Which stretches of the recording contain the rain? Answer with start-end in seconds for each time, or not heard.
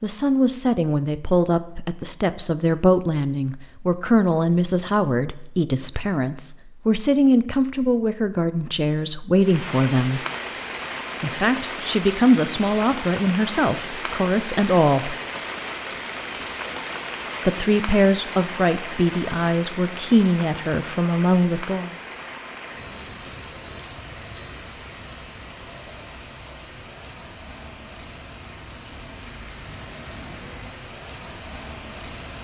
9.3-32.4.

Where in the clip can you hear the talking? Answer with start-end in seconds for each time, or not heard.
0.0-10.2, 11.2-15.2, 17.4-21.9.